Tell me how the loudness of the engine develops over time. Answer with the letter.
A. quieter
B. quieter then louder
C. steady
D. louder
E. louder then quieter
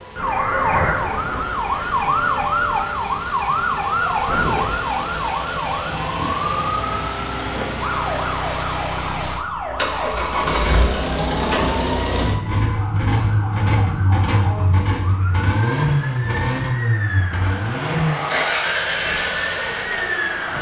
D.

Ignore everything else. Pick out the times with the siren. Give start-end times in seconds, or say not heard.
0.0-20.5.